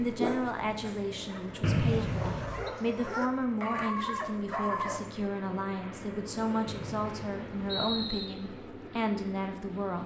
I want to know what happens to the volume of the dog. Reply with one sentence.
The volume of the dog goes up.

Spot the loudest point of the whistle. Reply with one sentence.
The loudest moment of the whistle is at 2 seconds.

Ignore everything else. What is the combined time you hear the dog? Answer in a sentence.
You can hear the dog for 5 seconds altogether.